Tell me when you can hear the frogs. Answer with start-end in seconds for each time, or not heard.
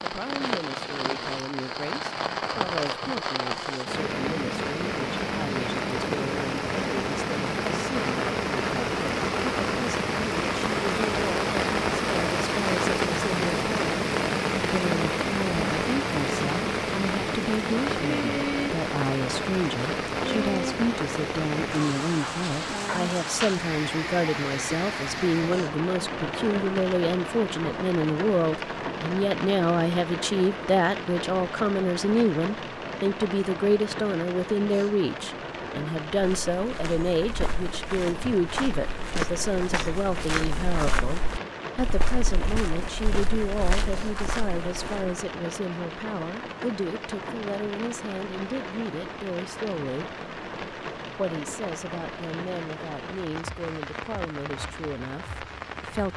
not heard.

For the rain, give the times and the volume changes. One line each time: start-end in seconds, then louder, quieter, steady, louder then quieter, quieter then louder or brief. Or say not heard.
0.0-56.1 quieter.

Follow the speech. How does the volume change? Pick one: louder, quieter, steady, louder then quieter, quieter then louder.
louder then quieter.